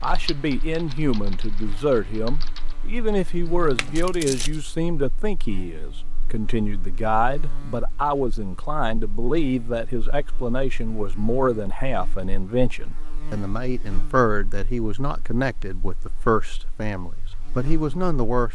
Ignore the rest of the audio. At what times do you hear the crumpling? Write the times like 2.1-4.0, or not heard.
3.8-4.6.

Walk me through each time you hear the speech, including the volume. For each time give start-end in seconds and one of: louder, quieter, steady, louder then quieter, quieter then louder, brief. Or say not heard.
0.0-18.5 steady.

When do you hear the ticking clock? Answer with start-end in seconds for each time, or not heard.
not heard.